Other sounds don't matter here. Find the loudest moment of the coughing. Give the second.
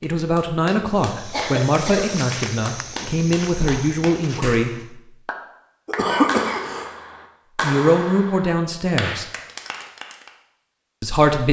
6 s.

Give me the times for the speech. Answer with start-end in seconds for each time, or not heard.
0.0-5.0, 7.6-9.2, 11.0-11.4.